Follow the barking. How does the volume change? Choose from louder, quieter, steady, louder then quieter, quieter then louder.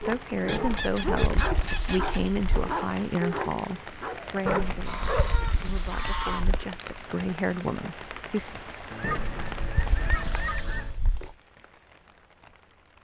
steady.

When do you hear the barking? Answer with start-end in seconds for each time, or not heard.
0.0-5.3.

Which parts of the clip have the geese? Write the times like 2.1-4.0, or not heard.
0.5-2.2, 4.8-6.5, 8.9-11.0.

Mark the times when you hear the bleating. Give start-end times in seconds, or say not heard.
0.5-2.8, 4.5-6.7, 9.0-11.3.